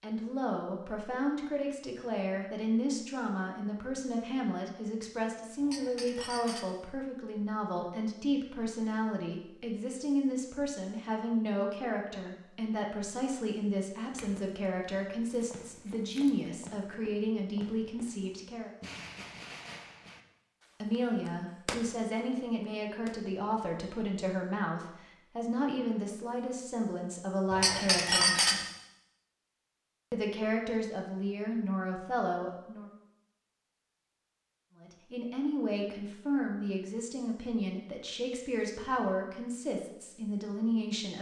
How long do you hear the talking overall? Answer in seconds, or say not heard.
35 s.